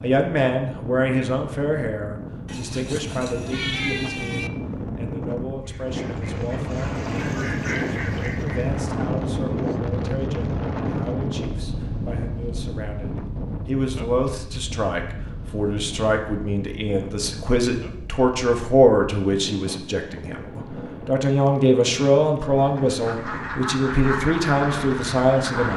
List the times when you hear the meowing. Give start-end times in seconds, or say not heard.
2.5-4.5.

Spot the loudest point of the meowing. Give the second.
4 s.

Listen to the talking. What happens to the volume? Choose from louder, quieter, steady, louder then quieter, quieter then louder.
quieter then louder.